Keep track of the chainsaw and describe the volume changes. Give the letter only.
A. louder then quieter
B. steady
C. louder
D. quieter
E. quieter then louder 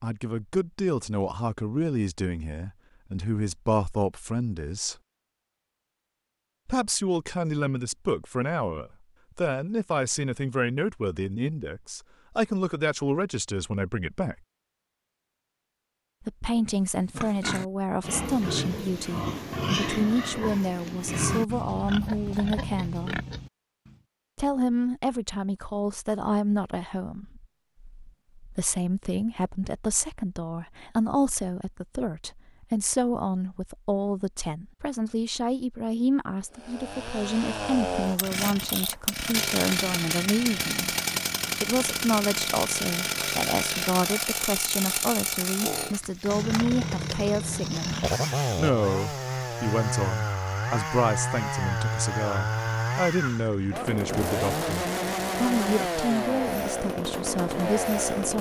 B.